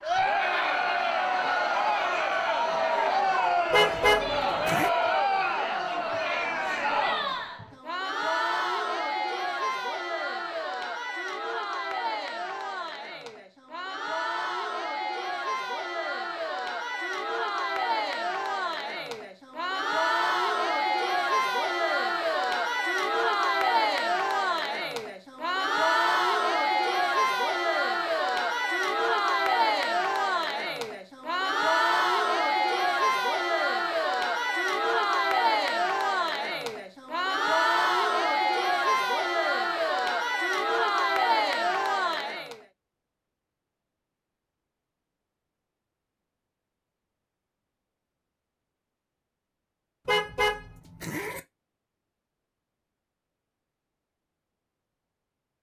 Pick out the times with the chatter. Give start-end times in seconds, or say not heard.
0.0-42.6.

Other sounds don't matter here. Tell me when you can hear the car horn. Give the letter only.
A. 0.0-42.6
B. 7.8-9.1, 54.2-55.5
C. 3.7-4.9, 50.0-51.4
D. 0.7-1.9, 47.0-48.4
C.